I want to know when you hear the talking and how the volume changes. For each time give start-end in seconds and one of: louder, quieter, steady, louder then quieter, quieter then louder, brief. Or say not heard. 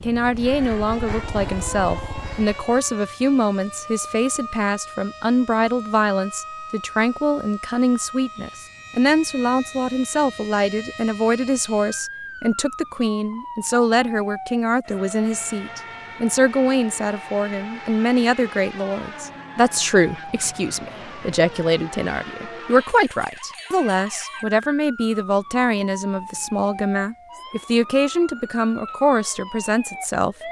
0.0-30.4 steady.